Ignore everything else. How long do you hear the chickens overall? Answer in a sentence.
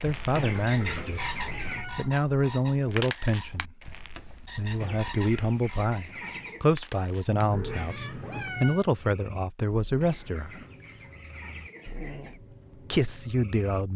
The chickens can be heard for 6 seconds in total.